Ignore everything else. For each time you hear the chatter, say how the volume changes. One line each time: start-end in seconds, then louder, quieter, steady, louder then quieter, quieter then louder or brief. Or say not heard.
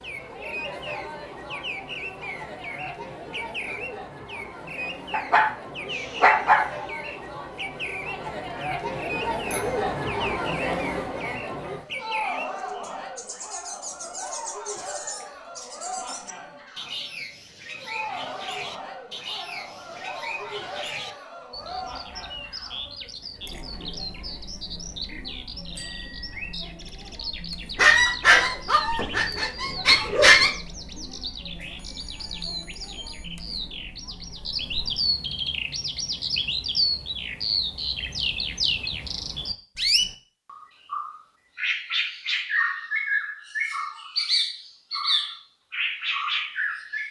0.0-35.0 louder then quieter.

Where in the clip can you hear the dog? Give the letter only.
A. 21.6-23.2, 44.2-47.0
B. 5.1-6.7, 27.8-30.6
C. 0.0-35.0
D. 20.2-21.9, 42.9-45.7
B.